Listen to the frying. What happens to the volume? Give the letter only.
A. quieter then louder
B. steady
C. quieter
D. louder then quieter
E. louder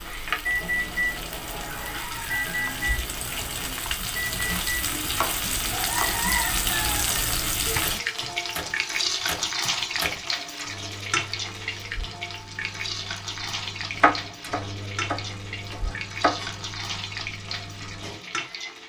D.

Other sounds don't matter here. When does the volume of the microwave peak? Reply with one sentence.
The loudest moment of the microwave is at 1 second.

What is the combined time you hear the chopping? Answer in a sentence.
The chopping can be heard for 4 seconds in total.